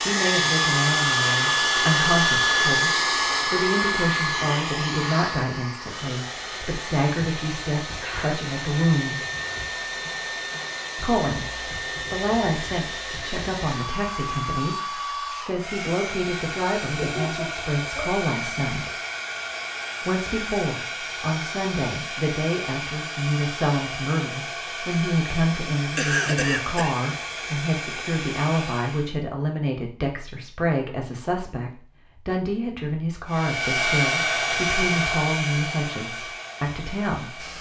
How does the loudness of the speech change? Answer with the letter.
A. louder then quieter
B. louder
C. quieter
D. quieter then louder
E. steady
E.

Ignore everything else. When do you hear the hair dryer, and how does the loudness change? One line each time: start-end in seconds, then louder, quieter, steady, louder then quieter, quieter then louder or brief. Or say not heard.
0.0-29.1 quieter
33.2-37.5 quieter.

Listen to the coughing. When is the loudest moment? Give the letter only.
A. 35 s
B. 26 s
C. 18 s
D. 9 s
B.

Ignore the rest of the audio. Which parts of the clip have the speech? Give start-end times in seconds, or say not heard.
0.0-9.2, 10.9-18.9, 20.0-37.5.